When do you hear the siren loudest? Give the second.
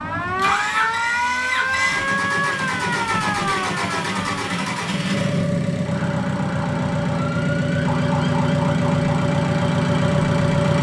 1 s.